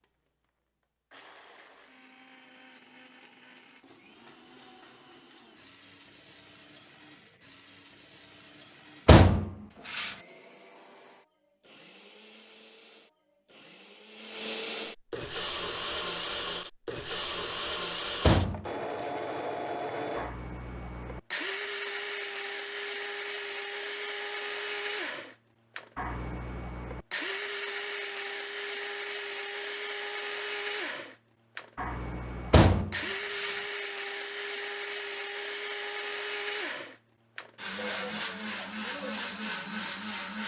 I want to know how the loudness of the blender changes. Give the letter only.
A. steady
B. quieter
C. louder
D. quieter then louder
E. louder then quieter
C.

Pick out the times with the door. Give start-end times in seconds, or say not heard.
9.1-10.1, 18.2-18.6, 32.5-33.5.